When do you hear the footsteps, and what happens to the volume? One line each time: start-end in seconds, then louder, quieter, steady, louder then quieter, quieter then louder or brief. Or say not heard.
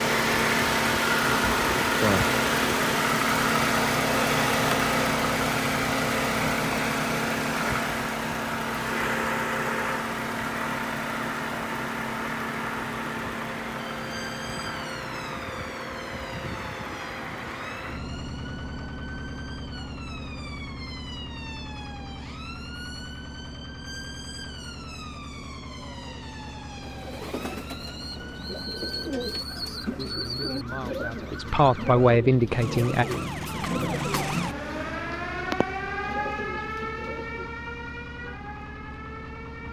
not heard.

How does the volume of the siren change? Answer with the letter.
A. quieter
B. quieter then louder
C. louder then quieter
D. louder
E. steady
D.